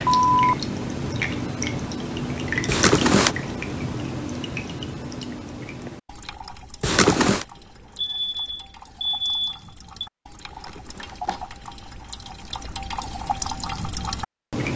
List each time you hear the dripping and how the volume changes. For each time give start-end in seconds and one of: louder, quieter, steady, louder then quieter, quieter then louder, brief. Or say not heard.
0.0-14.7 quieter then louder.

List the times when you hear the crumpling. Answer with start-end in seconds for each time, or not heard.
2.6-3.4, 6.8-7.5, 10.5-11.4.